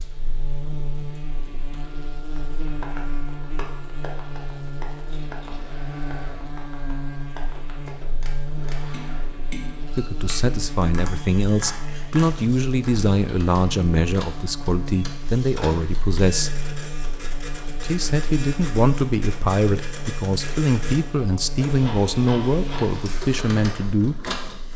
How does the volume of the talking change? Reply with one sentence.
The volume of the talking stays about the same.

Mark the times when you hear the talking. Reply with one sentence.
The talking can be heard from 9.9 to 16.6 s and from 17.8 to 24.1 s.